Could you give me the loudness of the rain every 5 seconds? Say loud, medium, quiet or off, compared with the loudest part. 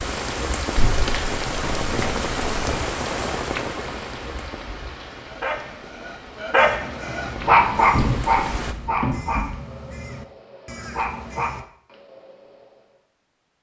loud, medium, off.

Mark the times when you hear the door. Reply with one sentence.
You can hear the door from 0.8 to 2.9 s and from 7.3 to 9.4 s.